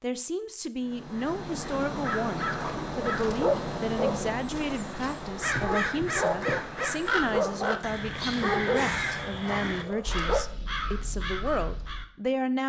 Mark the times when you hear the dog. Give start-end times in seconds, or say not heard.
2.5-10.4.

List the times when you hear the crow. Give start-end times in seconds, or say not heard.
0.8-12.1.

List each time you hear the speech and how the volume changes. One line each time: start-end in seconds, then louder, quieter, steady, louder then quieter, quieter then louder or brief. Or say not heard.
0.0-12.6 steady.